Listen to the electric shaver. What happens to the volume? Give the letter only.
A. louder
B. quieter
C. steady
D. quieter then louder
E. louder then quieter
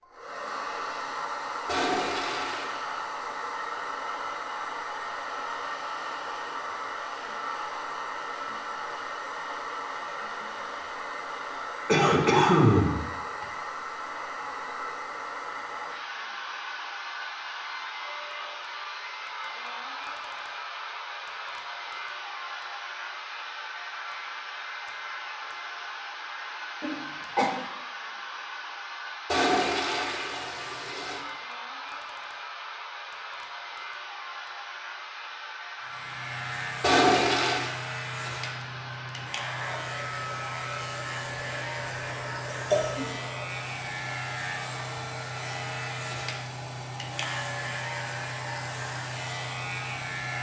C.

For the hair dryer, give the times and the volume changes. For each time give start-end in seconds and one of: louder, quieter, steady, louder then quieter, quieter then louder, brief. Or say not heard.
0.0-50.3 quieter.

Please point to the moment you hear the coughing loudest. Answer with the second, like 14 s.
13 s.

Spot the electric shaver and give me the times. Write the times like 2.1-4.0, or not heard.
35.8-50.3.